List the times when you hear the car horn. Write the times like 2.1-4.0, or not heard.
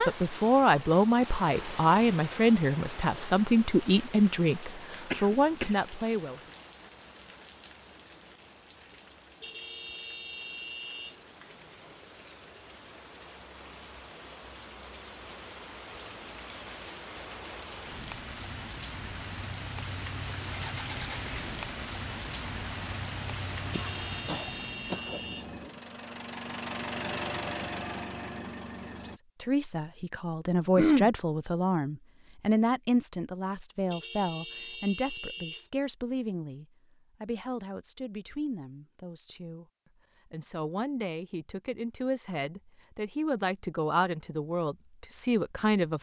9.4-11.2, 23.7-25.5, 33.9-35.7.